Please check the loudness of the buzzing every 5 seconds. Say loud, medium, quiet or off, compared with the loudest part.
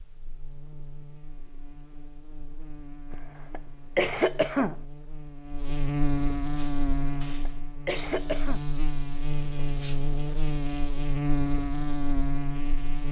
quiet, loud, loud.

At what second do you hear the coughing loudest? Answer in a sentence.
The volume of the coughing peaks at 4 seconds.